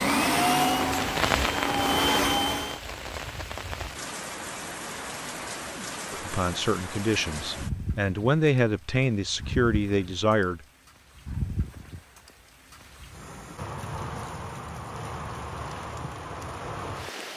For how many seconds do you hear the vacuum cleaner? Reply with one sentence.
The vacuum cleaner can be heard for 3 seconds in total.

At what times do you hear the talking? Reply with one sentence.
You can hear the talking from 6.1 to 10.6 s.